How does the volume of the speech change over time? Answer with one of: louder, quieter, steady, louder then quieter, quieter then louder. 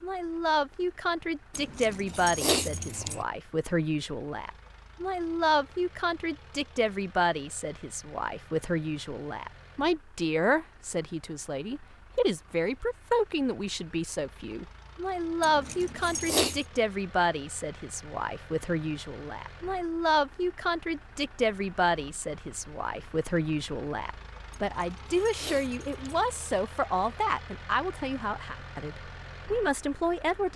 steady.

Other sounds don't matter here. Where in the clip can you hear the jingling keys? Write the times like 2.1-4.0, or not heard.
1.5-3.2, 15.4-16.6, 24.5-26.0.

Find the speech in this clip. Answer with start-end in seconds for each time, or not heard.
0.0-30.5.